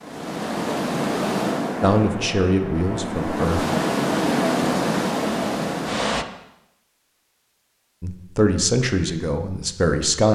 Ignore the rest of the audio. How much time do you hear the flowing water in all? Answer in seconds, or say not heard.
6 s.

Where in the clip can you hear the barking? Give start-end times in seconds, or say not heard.
not heard.